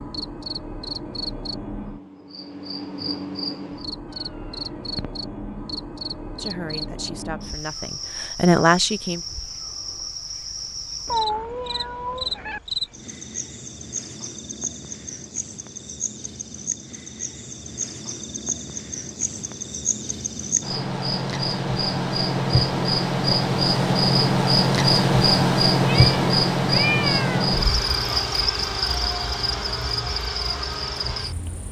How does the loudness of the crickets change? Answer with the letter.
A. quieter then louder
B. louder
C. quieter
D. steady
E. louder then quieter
B.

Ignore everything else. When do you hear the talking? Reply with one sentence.
The talking can be heard from 6.3 to 9.2 s.